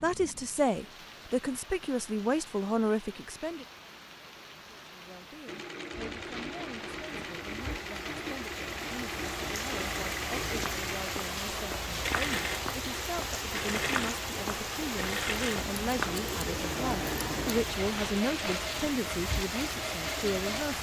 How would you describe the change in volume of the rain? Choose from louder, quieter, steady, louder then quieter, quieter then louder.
louder.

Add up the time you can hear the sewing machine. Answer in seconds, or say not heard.
15 s.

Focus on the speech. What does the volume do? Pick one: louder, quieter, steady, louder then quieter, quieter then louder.
quieter then louder.